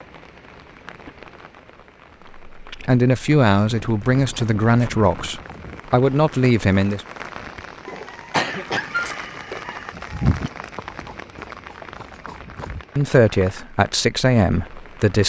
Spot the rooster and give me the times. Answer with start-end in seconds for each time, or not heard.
7.8-10.5.